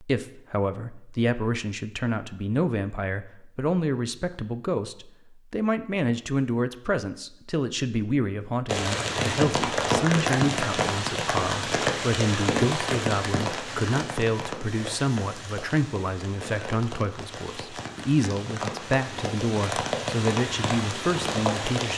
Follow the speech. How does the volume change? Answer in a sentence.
The loudness of the speech stays about the same.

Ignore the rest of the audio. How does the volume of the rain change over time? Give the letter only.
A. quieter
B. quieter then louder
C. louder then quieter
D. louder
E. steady
B.